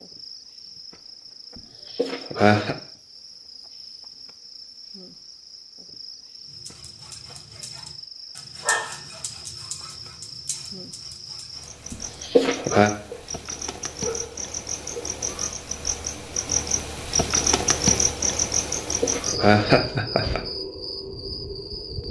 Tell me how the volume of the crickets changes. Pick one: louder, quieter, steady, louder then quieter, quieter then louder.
louder.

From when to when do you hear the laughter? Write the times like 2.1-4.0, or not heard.
1.9-2.8, 11.9-12.9, 19.0-20.4.